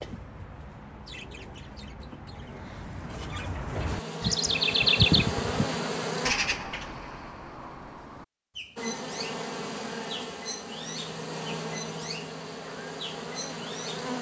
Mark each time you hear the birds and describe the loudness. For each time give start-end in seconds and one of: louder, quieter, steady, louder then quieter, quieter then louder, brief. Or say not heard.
0.0-14.1 louder then quieter.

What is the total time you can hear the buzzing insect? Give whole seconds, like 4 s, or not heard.
8 s.